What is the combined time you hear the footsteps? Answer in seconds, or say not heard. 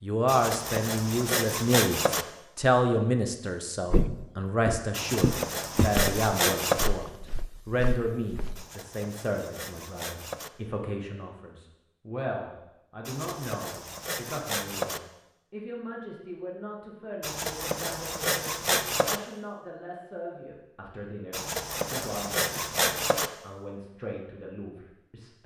5 s.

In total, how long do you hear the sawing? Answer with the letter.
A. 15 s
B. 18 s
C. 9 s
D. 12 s
D.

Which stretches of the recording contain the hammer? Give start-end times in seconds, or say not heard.
not heard.